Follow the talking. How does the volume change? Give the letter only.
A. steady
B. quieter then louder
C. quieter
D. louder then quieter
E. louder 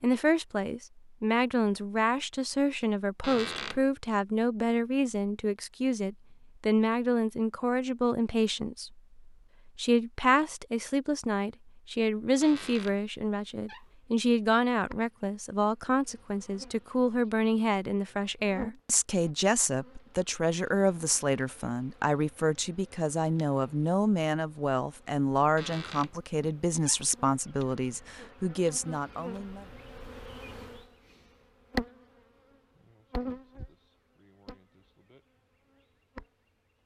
A.